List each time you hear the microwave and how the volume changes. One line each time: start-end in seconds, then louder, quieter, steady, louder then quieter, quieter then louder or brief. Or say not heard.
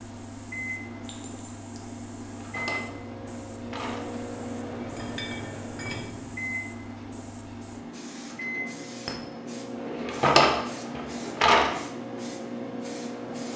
0.0-13.5 steady.